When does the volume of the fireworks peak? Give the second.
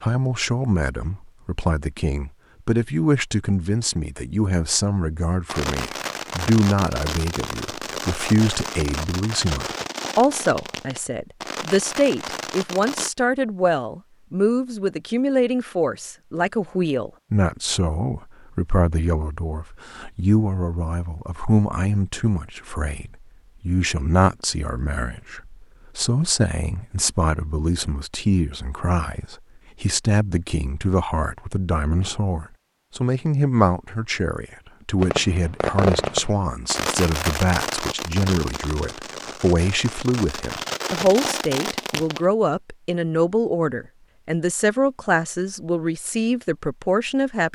36 s.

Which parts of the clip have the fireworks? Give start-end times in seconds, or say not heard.
5.5-13.1, 35.0-42.2.